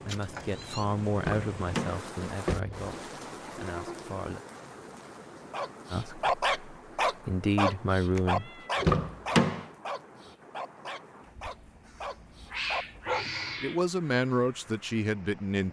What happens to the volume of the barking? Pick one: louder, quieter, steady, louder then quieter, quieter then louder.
quieter then louder.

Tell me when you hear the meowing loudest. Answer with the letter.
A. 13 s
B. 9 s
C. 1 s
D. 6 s
A.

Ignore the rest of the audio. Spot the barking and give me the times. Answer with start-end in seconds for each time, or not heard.
5.5-13.7.